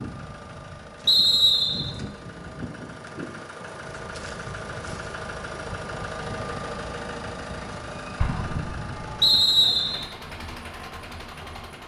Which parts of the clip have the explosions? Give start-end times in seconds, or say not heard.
8.2-9.2.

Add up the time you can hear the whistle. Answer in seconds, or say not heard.
2 s.